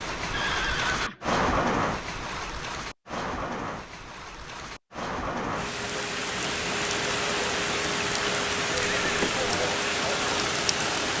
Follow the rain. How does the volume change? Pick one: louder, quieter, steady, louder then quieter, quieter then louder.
quieter then louder.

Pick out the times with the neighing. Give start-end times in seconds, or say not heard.
0.3-1.2, 8.8-9.5.